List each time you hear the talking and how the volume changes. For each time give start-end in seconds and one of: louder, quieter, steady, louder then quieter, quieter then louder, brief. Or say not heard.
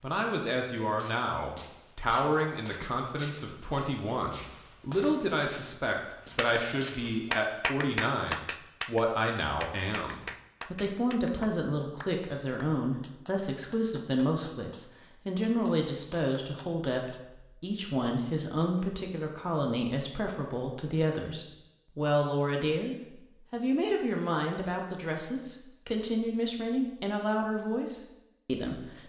0.0-29.0 steady.